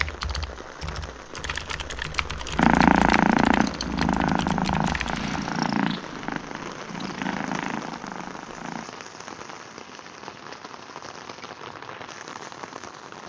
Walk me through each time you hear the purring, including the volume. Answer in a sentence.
The purring can be heard from 2.5 to 8.8 s, getting quieter.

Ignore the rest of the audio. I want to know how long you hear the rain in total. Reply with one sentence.
You can hear the rain for 13 seconds altogether.